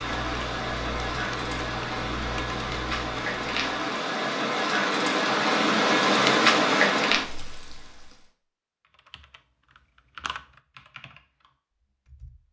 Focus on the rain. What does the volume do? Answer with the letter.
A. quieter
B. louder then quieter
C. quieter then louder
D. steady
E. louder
E.